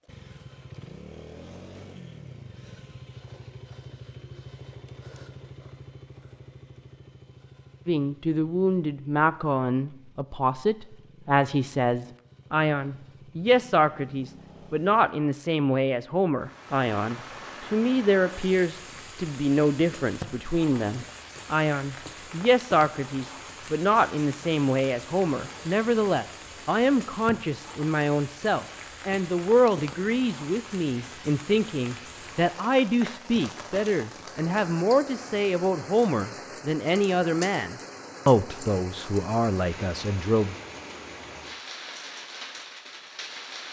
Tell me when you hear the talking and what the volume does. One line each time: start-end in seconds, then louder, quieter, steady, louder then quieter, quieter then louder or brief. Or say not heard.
7.8-40.5 steady.